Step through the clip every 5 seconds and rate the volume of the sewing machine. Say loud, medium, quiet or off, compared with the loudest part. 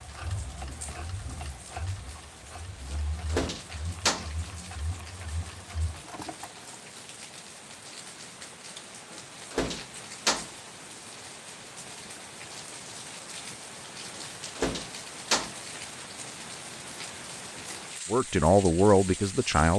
loud, loud, off, off.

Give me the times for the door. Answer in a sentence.
The door can be heard from 2.9 to 4.3 s, from 9.1 to 10.5 s and from 14.2 to 15.6 s.